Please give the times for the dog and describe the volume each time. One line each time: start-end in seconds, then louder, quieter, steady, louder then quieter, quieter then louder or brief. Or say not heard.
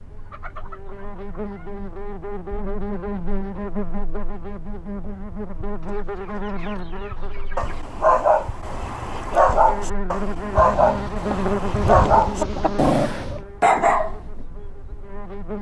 7.5-14.2 steady.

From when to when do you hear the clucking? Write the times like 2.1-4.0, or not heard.
0.1-1.7, 5.8-7.8, 10.6-13.4.